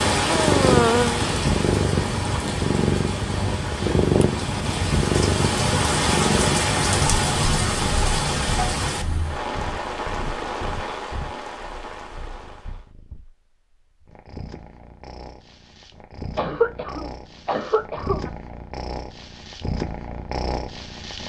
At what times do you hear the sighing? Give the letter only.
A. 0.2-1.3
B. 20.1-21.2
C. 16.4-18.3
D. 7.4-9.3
A.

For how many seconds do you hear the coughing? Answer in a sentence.
You can hear the coughing for 2 seconds altogether.